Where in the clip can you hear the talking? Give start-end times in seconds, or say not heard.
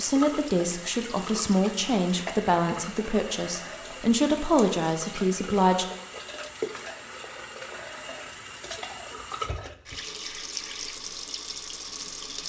0.0-5.8.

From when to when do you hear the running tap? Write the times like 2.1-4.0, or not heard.
0.0-12.4.